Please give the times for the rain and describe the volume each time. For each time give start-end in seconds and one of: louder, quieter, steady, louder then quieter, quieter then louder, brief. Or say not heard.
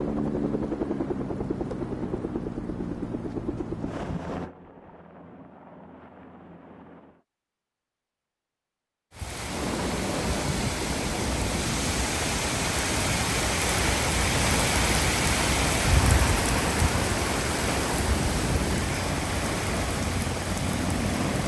9.1-21.4 louder then quieter.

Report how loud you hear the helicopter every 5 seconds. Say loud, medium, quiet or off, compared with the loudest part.
loud, medium, loud, loud, loud.